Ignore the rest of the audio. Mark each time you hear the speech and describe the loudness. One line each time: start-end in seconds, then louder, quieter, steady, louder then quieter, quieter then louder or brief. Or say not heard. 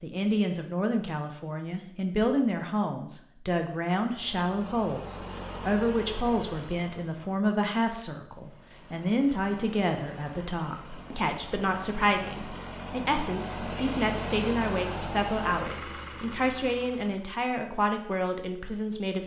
0.0-19.2 steady.